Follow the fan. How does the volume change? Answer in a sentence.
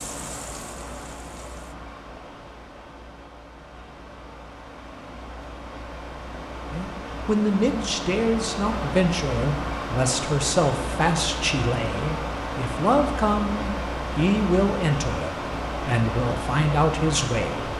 The volume of the fan goes up.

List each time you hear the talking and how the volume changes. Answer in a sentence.
You can hear the talking from 6.7 to 17.7 s, at a steady volume.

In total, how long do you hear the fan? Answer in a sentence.
You can hear the fan for 18 seconds altogether.